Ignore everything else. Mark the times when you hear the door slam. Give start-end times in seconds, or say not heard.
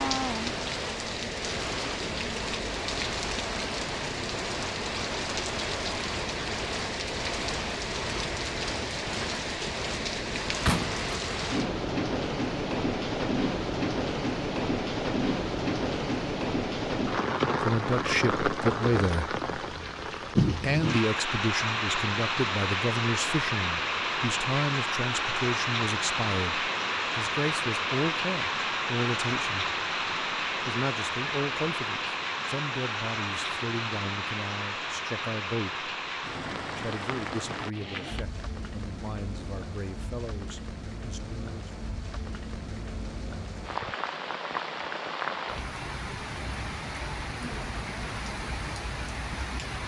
10.7-11.3.